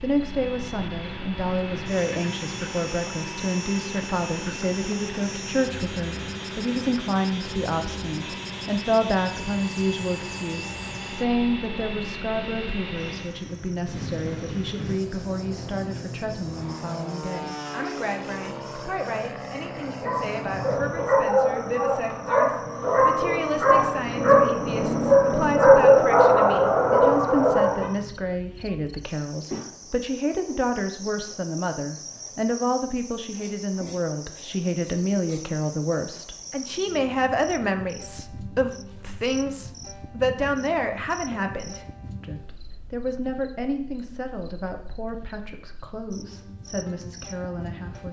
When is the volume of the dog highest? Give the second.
26 s.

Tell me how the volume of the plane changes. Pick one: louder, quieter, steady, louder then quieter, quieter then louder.
steady.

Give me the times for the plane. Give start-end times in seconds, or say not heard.
0.0-21.2.